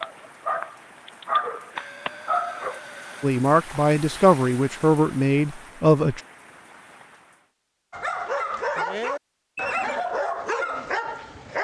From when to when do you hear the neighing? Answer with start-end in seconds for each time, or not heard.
1.8-3.4, 9.6-10.2.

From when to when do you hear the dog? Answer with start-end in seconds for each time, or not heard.
0.0-2.8, 7.9-11.6.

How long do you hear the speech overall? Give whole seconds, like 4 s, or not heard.
3 s.